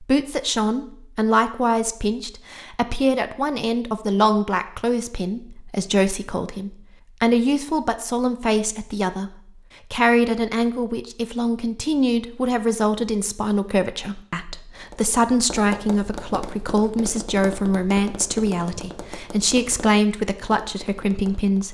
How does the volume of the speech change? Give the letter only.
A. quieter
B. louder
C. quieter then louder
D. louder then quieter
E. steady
E.